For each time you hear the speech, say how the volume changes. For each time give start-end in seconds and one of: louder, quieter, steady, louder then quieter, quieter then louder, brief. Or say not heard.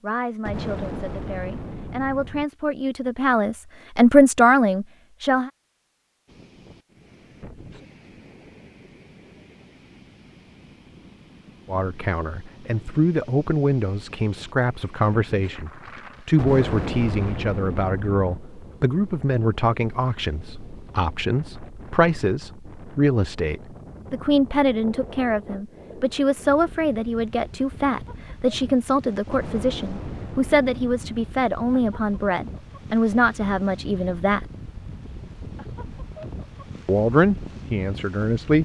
0.0-5.5 louder
11.7-34.5 steady
36.9-38.6 brief.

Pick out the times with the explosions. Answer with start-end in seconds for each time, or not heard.
0.5-2.5, 16.4-18.4, 29.3-31.3.